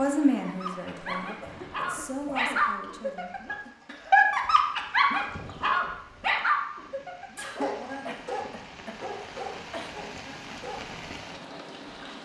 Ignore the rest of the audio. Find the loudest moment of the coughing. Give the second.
8 s.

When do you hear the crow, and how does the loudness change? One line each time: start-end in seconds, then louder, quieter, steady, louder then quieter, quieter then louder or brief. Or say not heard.
not heard.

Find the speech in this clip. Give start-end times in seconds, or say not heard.
0.0-3.8.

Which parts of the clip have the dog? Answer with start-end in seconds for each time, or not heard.
0.4-10.9.